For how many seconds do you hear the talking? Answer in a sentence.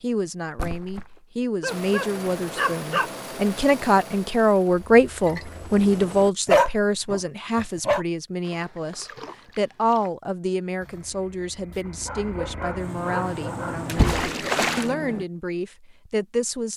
You can hear the talking for 17 seconds altogether.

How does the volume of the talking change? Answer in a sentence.
The volume of the talking goes up, then down.